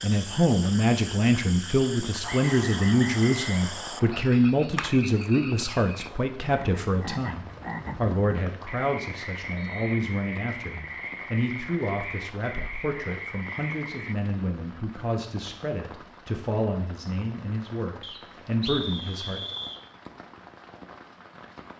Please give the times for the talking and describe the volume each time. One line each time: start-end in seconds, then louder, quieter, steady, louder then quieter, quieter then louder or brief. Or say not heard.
0.0-19.4 quieter.